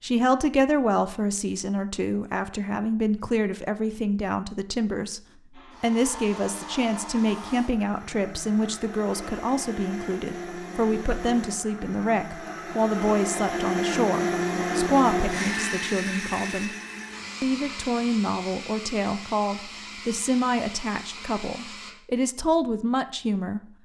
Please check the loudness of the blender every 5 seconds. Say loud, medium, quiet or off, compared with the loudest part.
off, medium, loud, loud, medium.